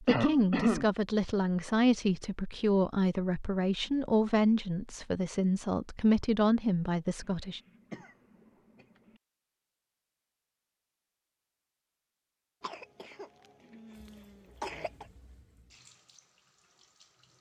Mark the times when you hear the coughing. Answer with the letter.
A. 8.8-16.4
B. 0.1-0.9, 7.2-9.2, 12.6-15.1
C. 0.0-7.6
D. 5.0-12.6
B.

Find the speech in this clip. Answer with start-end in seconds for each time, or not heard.
0.0-7.6.